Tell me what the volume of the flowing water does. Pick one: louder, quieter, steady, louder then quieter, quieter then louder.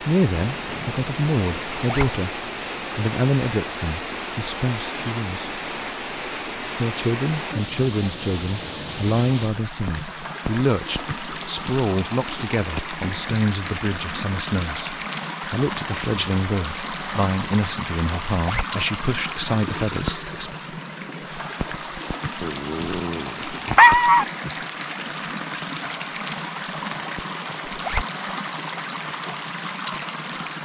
steady.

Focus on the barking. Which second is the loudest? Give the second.
24 s.